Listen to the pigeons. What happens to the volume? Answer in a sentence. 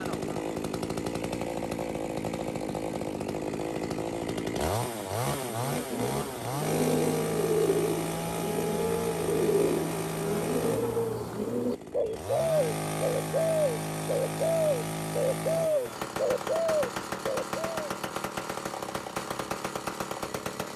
The loudness of the pigeons stays about the same.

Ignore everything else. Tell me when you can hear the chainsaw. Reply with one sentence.
You can hear the chainsaw from 0.0 to 20.7 s.